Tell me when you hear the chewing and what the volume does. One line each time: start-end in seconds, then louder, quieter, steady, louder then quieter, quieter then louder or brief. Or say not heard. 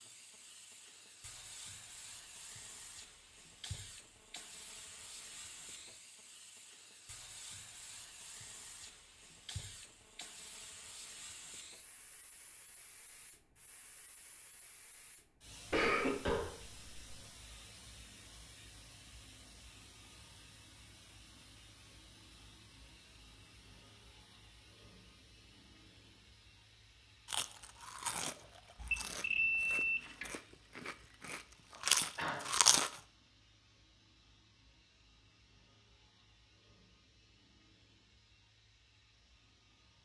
27.2-33.0 quieter then louder.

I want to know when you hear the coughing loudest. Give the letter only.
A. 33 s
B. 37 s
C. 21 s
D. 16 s
D.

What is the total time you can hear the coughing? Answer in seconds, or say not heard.
2 s.